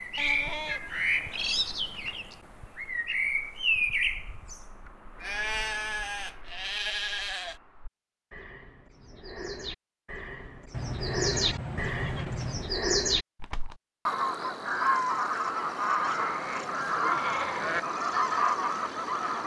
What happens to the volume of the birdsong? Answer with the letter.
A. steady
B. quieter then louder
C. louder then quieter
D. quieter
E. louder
B.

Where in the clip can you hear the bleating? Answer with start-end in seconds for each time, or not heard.
0.1-2.1, 5.2-7.6, 10.7-12.8, 16.2-17.8.